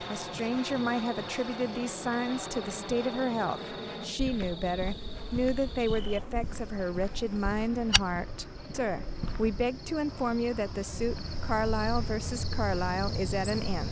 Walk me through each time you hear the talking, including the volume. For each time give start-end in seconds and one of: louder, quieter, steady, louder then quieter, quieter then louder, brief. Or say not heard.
0.0-13.8 steady.